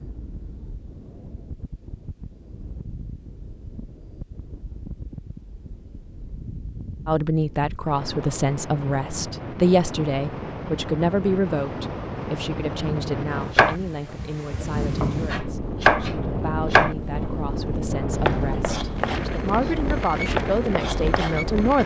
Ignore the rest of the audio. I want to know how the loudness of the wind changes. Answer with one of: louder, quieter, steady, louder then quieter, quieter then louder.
louder.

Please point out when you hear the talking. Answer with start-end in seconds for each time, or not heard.
7.0-21.8.